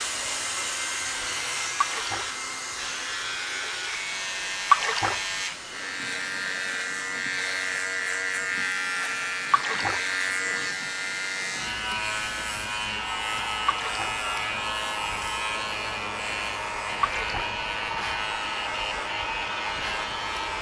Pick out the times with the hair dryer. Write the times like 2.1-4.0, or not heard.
0.0-20.5.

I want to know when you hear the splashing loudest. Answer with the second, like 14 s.
5 s.